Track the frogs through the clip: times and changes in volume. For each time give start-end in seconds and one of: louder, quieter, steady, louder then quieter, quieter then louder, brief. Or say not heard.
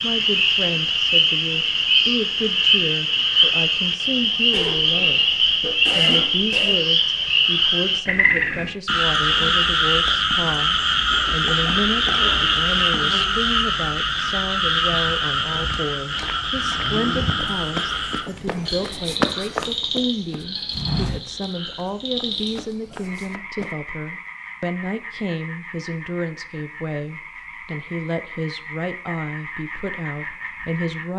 0.0-31.1 quieter.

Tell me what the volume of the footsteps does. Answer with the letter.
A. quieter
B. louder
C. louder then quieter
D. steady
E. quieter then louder
C.